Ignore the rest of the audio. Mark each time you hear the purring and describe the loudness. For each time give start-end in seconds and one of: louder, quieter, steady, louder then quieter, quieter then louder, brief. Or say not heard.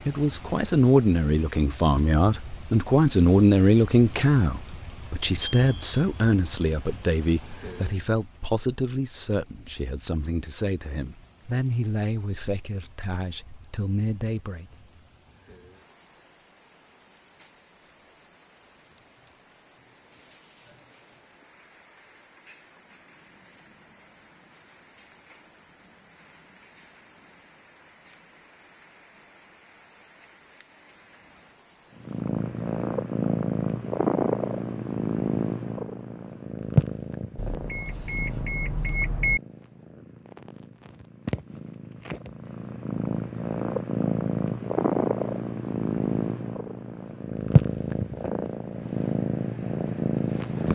31.9-50.7 quieter then louder.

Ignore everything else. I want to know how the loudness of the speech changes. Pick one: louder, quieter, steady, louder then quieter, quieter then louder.
quieter.